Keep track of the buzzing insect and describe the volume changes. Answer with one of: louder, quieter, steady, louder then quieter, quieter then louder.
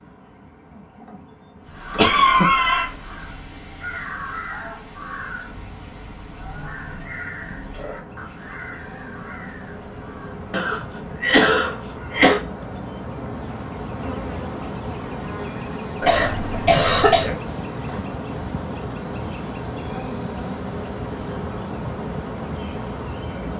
louder.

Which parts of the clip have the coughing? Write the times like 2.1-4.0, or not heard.
1.9-2.9, 10.5-12.4, 16.0-17.4.